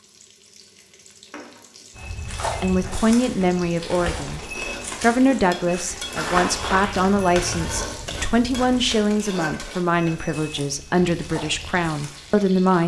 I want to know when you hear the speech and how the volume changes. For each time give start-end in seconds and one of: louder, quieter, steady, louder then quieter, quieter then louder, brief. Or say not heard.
2.6-12.8 steady.